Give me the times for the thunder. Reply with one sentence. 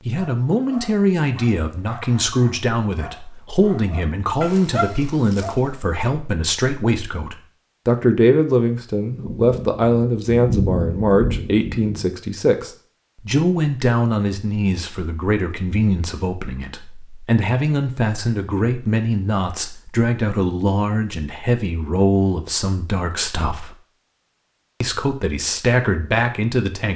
The thunder can be heard from 9.1 to 12.1 s.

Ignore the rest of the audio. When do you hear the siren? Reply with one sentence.
You can't hear the siren here.